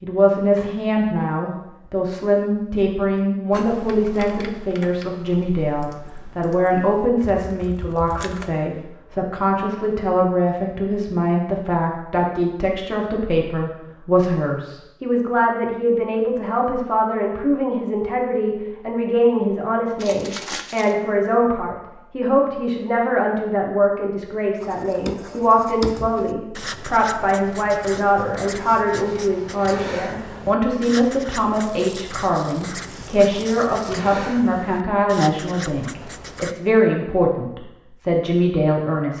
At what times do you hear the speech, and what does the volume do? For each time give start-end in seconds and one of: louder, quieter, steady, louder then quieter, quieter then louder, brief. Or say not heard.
0.0-39.1 steady.